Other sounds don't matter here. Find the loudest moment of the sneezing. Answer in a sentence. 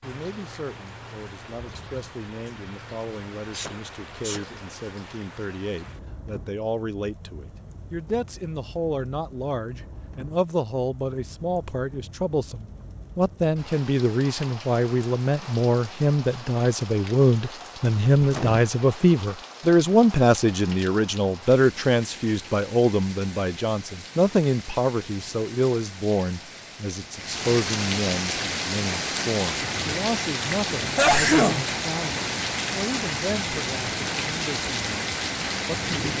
The loudest moment of the sneezing is at 31 seconds.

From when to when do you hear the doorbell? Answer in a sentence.
The doorbell can't be heard in this clip.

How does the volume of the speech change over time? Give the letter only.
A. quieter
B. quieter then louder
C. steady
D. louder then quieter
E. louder
D.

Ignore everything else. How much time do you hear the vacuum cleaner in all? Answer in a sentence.
You can't hear the vacuum cleaner here.